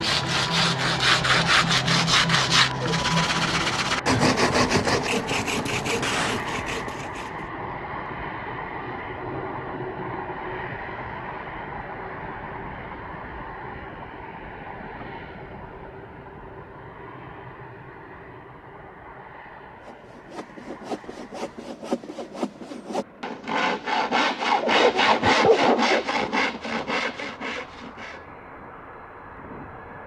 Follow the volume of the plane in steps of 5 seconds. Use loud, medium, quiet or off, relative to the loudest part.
loud, loud, loud, medium, quiet, medium.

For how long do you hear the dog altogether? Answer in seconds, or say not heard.
2 s.